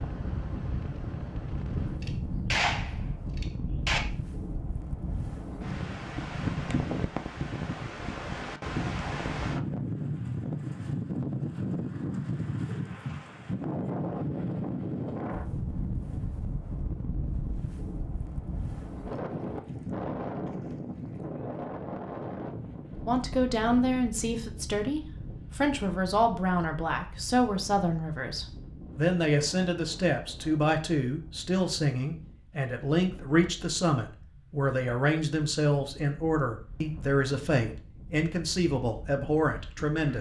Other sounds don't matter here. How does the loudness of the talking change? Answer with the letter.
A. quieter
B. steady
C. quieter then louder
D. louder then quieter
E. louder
B.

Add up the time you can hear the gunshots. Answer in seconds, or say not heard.
2 s.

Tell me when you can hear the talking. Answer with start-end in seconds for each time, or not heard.
23.1-40.1.